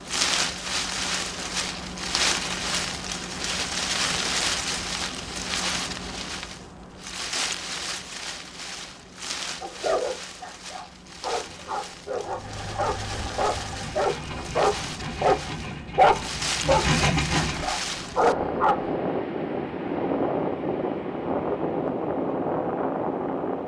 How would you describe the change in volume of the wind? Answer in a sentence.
The volume of the wind goes down, then up.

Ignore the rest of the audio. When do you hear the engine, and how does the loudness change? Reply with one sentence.
The engine can be heard from 12.2 to 17.8 s, getting louder.